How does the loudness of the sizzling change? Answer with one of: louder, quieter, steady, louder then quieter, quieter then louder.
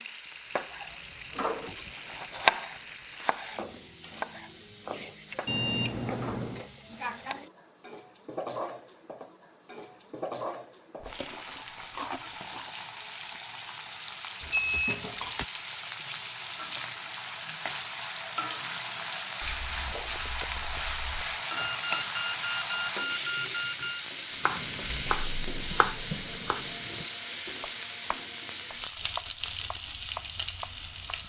louder.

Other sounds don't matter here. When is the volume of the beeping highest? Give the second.
6 s.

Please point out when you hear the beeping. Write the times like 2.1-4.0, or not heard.
5.5-6.6, 14.4-15.4, 21.6-24.1.